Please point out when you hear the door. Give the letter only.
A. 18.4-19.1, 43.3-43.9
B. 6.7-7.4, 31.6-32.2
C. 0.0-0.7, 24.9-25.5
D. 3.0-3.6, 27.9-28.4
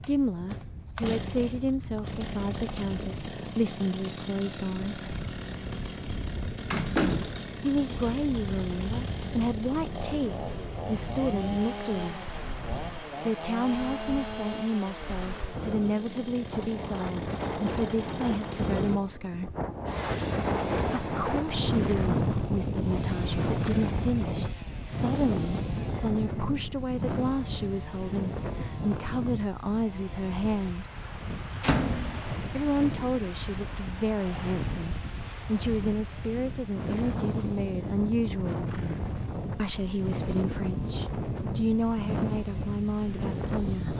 B.